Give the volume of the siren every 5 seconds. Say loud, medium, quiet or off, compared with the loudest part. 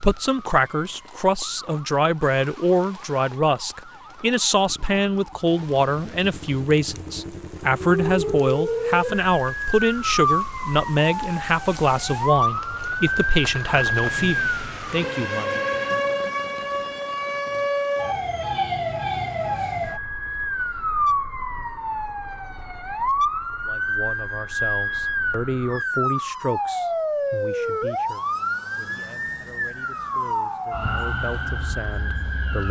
quiet, loud, loud, loud, loud, loud, loud.